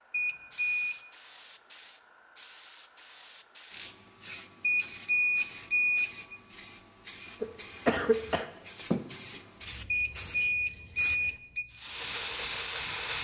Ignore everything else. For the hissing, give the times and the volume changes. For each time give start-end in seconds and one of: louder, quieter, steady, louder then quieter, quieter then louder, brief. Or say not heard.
0.0-13.2 louder.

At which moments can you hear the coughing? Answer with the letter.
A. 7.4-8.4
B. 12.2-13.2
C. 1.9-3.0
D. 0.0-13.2
A.